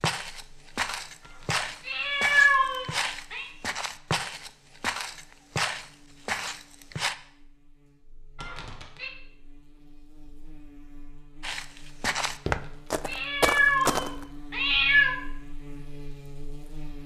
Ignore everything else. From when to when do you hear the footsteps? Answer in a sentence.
The footsteps can be heard from 0.0 to 7.2 s and from 11.4 to 14.2 s.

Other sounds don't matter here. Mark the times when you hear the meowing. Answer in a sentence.
You can hear the meowing from 1.2 to 3.5 s, from 8.3 to 9.1 s and from 13.1 to 15.2 s.